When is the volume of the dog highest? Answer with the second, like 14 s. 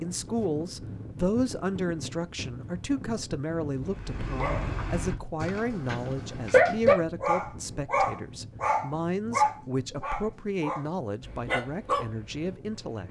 7 s.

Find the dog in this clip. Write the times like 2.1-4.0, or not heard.
3.9-12.5.